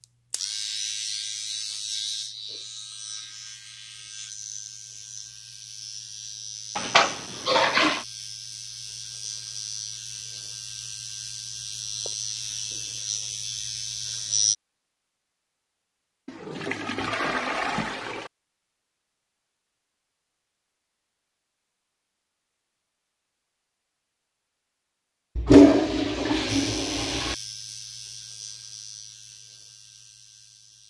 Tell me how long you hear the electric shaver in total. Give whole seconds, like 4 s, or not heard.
19 s.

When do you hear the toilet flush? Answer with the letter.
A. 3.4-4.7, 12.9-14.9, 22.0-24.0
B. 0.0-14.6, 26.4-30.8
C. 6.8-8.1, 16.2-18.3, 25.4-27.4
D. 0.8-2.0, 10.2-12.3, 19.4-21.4
C.